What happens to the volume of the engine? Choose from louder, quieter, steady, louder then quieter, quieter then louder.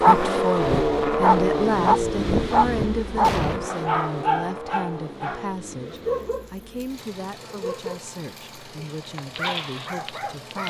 quieter.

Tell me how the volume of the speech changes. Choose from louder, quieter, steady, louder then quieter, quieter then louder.
quieter.